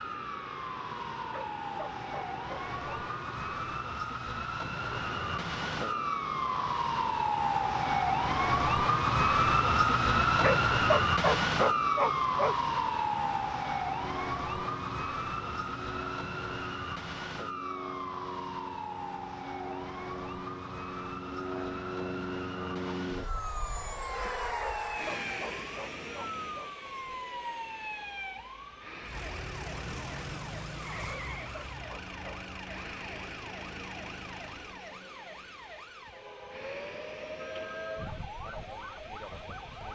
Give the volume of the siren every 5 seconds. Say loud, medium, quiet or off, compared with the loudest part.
medium, loud, loud, medium, quiet, quiet, quiet, quiet.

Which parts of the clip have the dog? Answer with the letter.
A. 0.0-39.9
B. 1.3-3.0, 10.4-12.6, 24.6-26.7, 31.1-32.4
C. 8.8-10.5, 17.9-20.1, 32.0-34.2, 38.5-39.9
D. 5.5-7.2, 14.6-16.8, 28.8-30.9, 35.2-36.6
B.